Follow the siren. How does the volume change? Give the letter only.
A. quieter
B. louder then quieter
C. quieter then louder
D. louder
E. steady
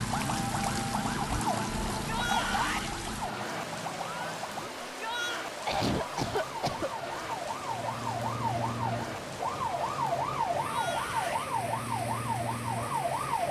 C.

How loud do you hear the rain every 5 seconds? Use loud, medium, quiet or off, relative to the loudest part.
loud, loud, medium.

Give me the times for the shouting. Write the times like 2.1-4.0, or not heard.
1.9-2.9, 4.8-5.5, 10.7-11.5.